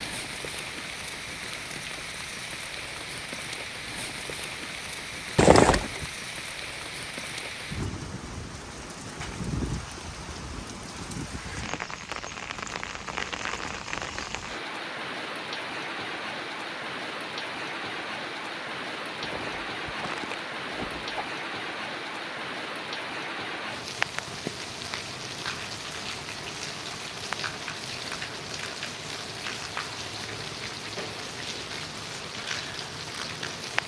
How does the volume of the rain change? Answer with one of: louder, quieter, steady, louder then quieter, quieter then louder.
steady.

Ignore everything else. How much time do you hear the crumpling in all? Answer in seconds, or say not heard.
3 s.